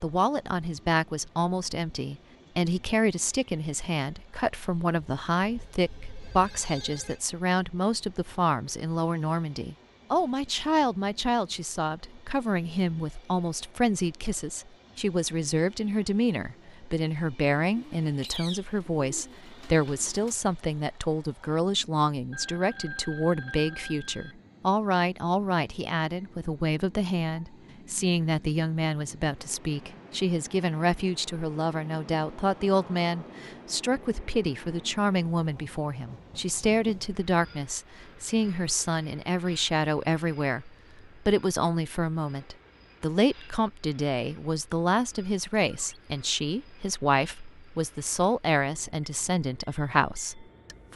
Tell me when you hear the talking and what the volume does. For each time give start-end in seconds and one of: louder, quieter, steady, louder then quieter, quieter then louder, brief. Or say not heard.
0.0-50.9 steady.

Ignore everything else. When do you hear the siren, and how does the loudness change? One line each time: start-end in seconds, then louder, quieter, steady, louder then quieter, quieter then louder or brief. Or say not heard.
not heard.